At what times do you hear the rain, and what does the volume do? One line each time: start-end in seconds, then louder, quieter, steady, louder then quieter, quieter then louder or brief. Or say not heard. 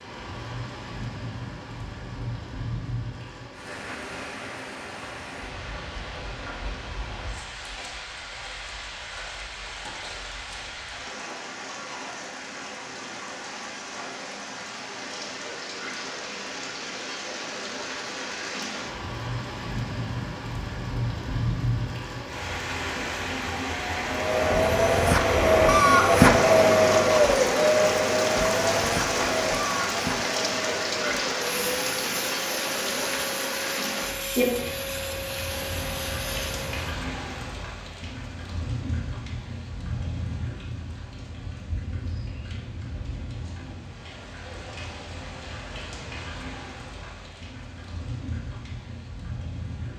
0.0-49.9 louder then quieter.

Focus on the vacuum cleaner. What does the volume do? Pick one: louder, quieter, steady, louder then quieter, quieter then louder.
quieter.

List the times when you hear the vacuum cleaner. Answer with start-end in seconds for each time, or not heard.
24.1-36.9.